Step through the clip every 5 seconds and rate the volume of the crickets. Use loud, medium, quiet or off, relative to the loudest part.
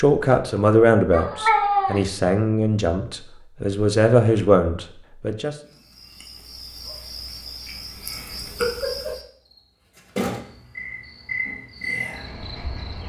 off, medium, loud.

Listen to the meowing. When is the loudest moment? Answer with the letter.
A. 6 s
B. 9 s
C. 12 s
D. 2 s
D.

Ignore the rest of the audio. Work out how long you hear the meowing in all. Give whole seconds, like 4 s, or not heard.
2 s.